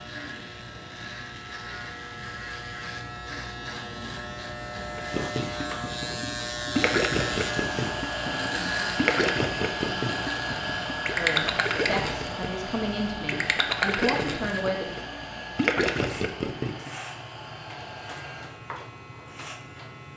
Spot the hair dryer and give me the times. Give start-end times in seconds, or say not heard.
7.2-18.4.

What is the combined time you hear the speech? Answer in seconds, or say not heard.
4 s.